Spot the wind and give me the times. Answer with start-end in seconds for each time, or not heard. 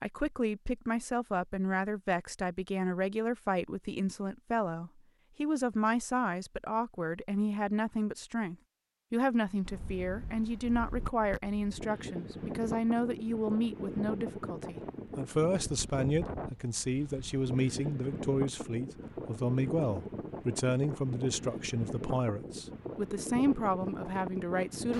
9.6-24.9.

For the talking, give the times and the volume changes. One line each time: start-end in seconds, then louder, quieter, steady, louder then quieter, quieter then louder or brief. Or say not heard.
0.0-24.9 steady.